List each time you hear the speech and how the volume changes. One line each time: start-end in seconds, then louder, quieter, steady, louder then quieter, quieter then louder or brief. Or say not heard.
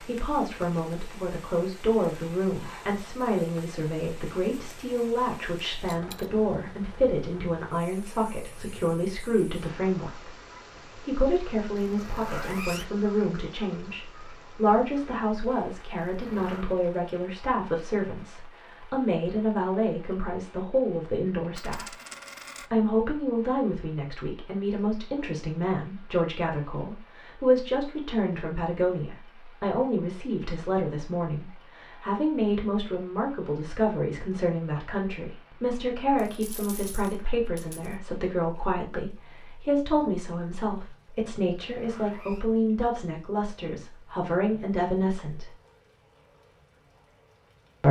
0.0-10.3 steady
10.9-21.9 steady
22.7-45.5 steady.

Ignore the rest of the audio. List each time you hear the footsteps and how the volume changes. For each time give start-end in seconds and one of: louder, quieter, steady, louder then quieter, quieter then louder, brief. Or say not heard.
not heard.